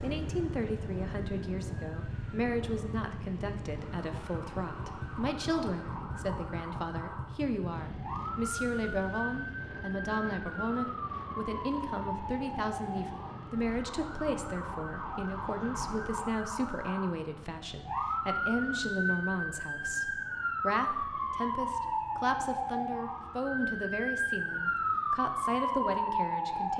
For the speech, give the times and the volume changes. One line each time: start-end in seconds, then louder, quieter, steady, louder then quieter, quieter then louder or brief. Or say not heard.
0.0-26.7 steady.